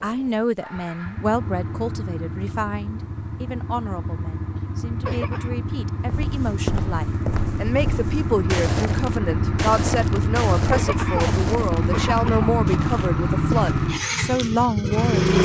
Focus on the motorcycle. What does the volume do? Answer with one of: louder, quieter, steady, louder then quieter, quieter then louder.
louder.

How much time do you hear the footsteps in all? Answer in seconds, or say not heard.
8 s.